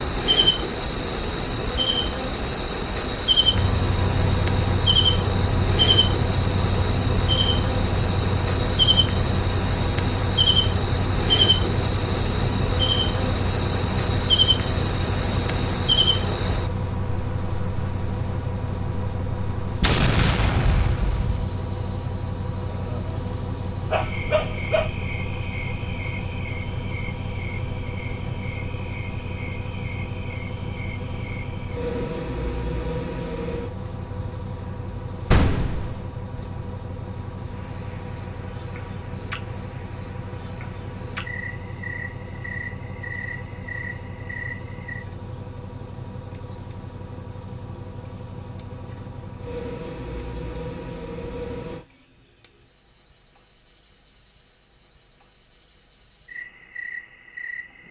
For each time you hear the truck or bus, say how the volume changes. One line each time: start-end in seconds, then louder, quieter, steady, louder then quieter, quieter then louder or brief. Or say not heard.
3.5-51.9 quieter.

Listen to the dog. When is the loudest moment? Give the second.
24 s.